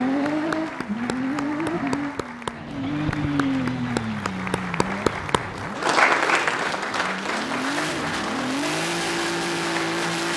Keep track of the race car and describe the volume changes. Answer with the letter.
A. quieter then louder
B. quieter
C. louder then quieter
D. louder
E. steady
A.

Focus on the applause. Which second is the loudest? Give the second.
6 s.